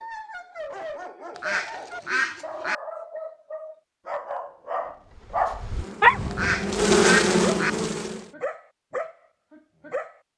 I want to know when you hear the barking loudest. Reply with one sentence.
The loudest moment of the barking is at 6 seconds.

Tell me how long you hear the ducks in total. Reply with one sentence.
You can hear the ducks for 3 seconds altogether.